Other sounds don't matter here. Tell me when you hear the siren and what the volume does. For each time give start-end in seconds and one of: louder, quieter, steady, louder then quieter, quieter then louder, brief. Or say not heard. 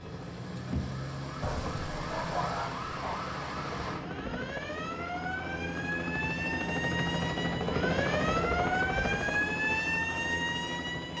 0.0-11.1 louder.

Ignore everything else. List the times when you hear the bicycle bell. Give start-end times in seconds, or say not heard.
not heard.